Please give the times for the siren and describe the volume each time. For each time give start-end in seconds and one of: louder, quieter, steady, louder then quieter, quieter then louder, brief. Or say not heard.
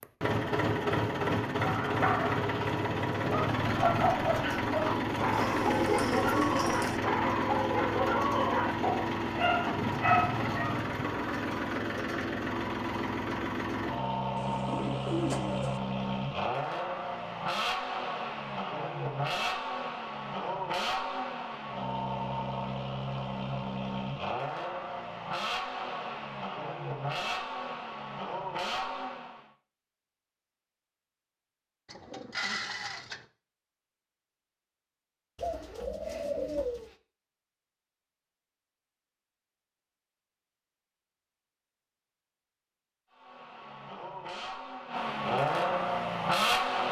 not heard.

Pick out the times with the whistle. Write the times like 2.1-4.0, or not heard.
not heard.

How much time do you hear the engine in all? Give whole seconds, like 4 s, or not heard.
33 s.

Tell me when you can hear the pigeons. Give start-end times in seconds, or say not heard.
5.3-7.0, 14.3-15.8, 31.9-33.2, 35.4-37.0.